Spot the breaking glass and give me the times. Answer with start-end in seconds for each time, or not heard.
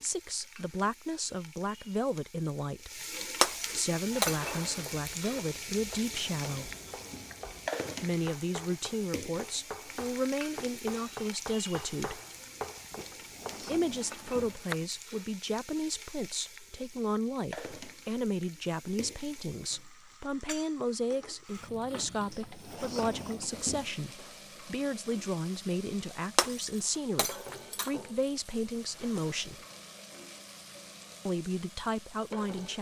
3.4-4.4, 26.4-27.9.